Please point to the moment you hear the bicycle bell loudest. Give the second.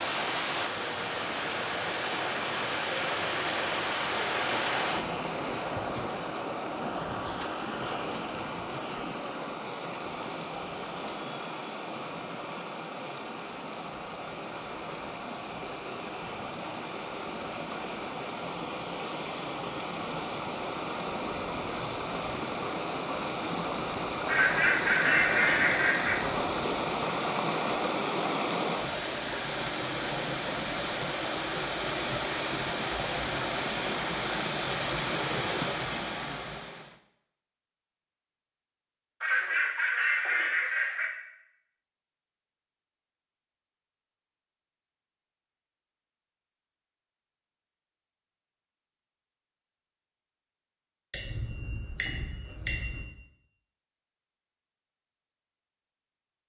52 s.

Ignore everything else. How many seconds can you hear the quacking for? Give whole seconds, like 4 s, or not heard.
4 s.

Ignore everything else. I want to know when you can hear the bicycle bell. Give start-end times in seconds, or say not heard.
11.1-11.6, 51.1-53.0.